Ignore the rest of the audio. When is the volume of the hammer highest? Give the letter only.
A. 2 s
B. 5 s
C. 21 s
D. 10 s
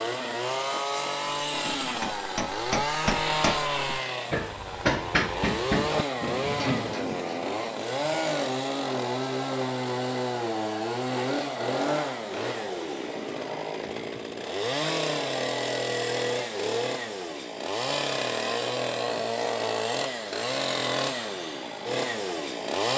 B.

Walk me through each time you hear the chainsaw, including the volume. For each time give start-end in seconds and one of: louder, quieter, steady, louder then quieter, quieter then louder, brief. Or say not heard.
0.0-22.9 steady.